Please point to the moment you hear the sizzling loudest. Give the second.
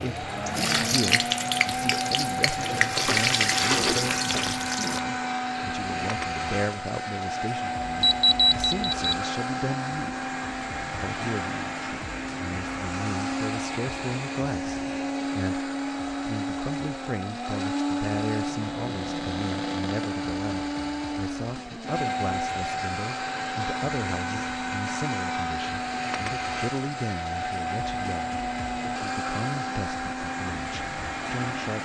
3 s.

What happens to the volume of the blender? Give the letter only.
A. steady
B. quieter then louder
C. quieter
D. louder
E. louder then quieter
A.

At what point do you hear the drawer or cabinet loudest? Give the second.
4 s.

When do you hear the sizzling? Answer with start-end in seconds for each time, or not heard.
0.0-5.0.